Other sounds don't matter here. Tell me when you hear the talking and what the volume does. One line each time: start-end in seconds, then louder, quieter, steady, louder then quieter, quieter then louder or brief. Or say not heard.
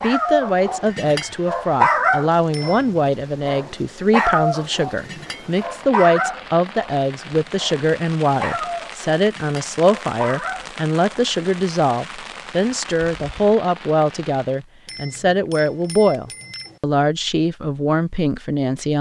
0.0-18.9 steady.